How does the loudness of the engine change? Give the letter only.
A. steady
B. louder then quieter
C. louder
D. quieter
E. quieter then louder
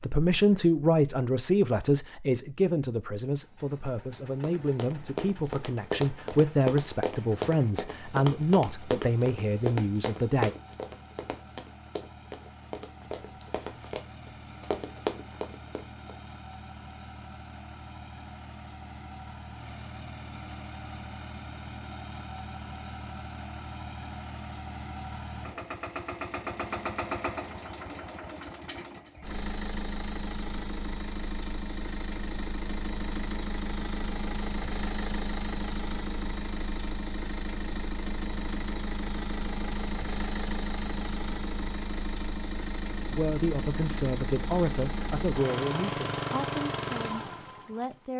C.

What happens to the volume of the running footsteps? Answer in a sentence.
The loudness of the running footsteps goes down, then up.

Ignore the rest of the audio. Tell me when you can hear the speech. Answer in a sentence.
The speech can be heard from 0.0 to 10.5 s and from 43.1 to 48.1 s.